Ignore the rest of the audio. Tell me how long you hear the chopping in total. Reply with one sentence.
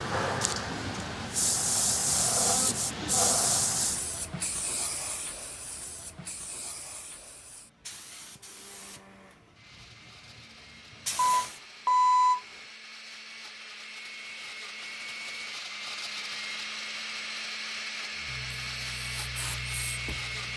The chopping can't be heard in this clip.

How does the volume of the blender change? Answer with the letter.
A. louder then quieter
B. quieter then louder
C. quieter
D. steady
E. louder
E.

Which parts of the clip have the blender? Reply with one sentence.
You can hear the blender from 8.2 to 20.5 s.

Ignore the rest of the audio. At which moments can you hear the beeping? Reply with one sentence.
The beeping can be heard from 11.2 to 12.4 s.